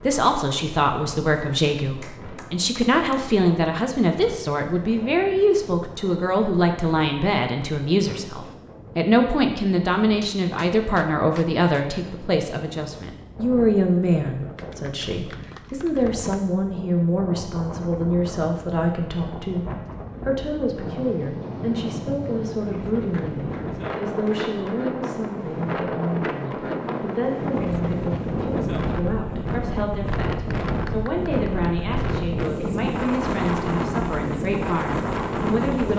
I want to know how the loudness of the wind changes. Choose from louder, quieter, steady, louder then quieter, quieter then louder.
louder.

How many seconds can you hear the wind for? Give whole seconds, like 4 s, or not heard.
36 s.